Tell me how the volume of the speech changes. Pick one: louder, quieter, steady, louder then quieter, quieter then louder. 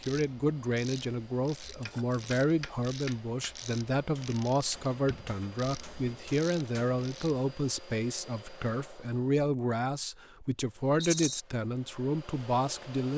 steady.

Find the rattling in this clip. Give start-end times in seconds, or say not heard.
1.8-2.5, 11.0-11.4.